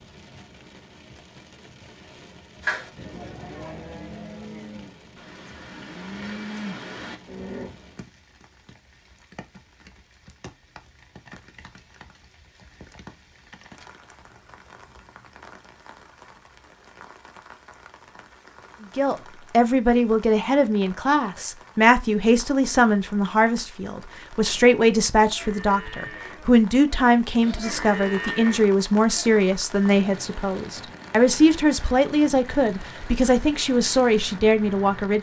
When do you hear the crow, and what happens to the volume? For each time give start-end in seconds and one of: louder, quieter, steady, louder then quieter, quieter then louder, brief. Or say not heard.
not heard.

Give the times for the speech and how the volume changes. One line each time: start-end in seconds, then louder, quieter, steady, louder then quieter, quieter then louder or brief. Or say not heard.
18.9-35.1 steady.